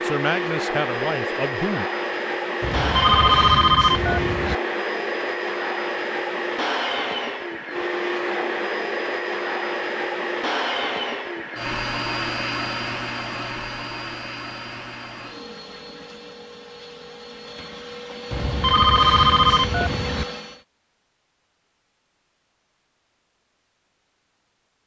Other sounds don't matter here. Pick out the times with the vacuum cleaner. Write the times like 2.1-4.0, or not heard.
0.0-20.6.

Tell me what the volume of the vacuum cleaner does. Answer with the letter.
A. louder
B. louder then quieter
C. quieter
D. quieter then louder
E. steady
C.